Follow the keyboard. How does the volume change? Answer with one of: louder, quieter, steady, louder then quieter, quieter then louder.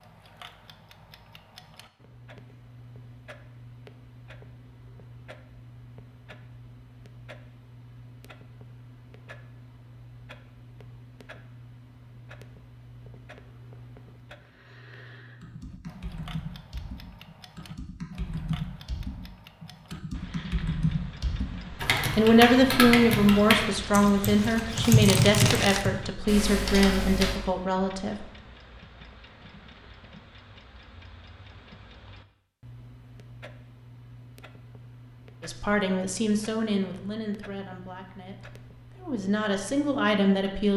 louder.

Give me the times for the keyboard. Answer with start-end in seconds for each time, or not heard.
15.4-27.4.